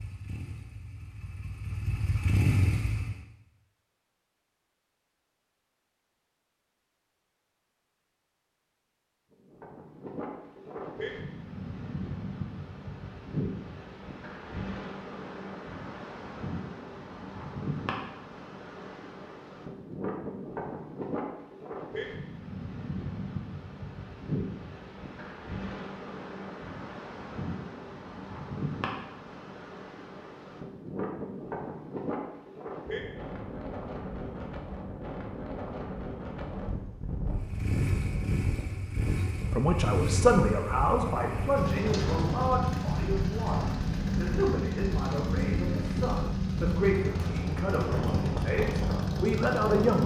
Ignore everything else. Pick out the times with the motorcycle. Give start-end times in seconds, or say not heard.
0.0-3.2, 37.3-50.0.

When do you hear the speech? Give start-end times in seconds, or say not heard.
39.5-50.0.